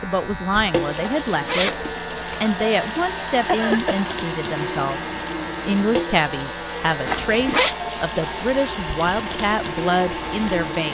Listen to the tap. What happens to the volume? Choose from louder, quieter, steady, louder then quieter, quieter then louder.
steady.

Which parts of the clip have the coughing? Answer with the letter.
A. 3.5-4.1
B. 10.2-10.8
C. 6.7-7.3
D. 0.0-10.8
A.